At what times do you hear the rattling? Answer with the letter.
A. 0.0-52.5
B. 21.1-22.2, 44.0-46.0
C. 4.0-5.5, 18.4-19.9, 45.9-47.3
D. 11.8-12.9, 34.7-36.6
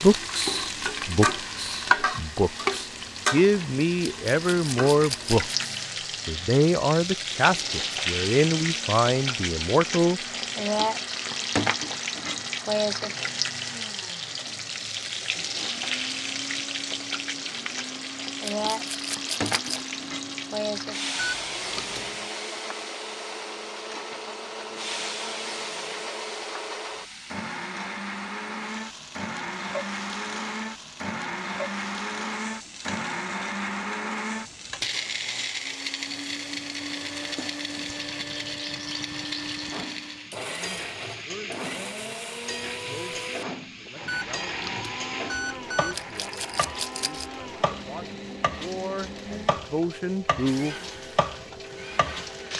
C.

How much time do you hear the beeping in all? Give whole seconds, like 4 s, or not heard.
3 s.